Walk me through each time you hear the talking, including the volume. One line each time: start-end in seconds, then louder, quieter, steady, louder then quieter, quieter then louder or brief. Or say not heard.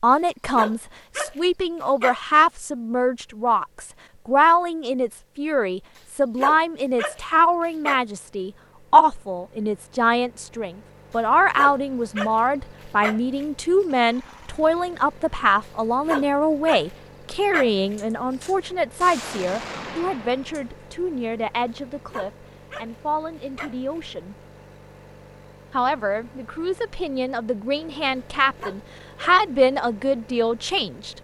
0.0-24.4 quieter
25.7-31.1 louder then quieter.